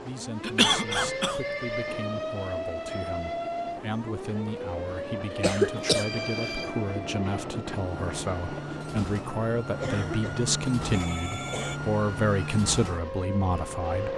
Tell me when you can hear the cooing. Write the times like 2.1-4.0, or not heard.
not heard.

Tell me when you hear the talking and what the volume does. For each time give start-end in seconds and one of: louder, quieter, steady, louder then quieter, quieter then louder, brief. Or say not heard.
0.0-14.1 louder.